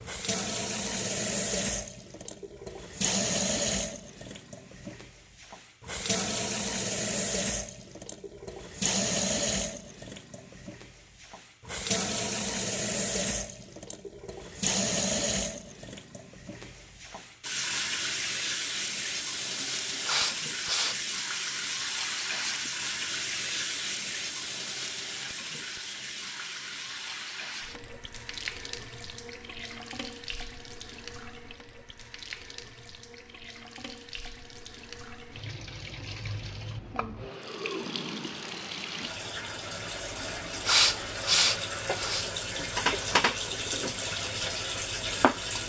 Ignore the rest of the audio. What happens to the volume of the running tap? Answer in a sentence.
The loudness of the running tap goes down, then up.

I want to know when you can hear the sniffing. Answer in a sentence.
You can hear the sniffing from 19.6 to 20.9 s and from 40.2 to 42.2 s.